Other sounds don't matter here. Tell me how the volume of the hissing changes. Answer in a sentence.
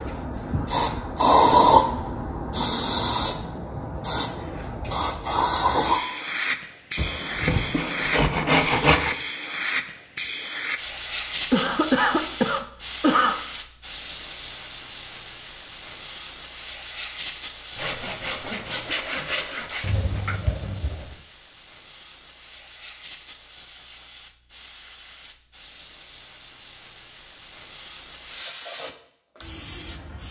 The loudness of the hissing goes down.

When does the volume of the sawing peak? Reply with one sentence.
The loudest moment of the sawing is at 9 seconds.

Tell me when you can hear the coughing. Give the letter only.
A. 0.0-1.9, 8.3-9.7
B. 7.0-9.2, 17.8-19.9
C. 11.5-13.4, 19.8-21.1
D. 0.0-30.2
C.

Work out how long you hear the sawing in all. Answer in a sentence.
The sawing can be heard for 4 seconds in total.